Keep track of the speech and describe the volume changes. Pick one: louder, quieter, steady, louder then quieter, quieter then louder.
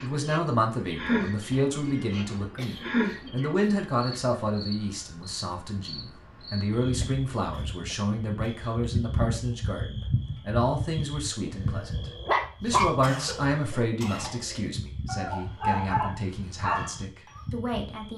quieter.